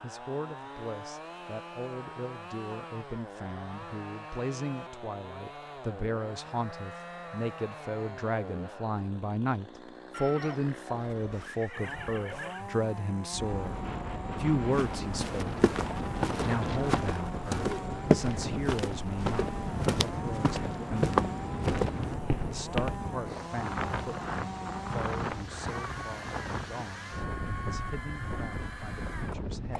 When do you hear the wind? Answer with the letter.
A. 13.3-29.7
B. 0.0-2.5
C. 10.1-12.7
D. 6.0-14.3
A.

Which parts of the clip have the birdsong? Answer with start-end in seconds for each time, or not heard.
not heard.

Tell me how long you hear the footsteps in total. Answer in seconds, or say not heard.
8 s.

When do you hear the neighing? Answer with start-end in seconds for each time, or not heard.
10.1-12.7.